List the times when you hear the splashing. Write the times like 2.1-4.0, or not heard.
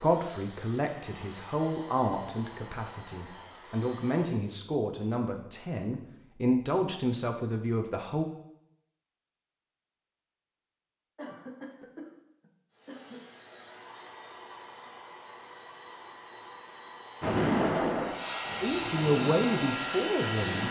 17.2-20.6.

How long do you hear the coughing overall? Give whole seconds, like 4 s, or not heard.
2 s.